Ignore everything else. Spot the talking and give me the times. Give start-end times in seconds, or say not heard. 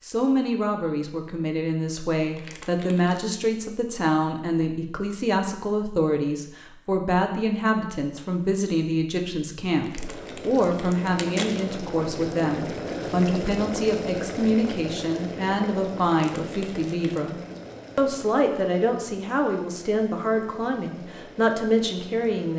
0.0-17.4, 17.9-22.5.